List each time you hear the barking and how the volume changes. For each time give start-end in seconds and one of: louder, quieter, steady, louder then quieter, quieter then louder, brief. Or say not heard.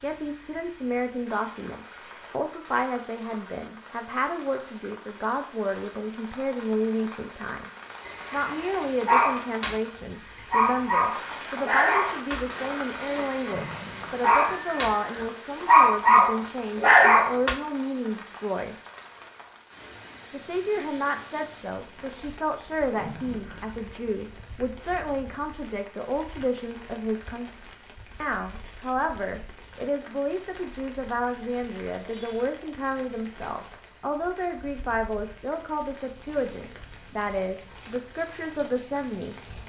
8.0-9.8 brief
10.5-14.9 quieter then louder
15.7-17.6 brief.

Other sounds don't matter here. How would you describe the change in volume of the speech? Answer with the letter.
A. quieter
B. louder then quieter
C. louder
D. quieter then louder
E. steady
E.